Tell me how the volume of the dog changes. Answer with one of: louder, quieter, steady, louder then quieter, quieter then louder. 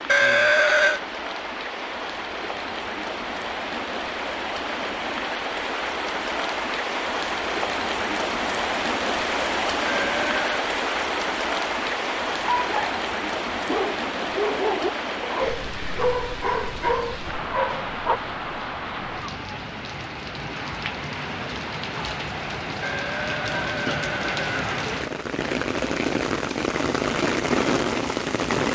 steady.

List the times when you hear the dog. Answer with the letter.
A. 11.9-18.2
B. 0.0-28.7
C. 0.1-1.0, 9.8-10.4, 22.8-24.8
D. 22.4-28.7
A.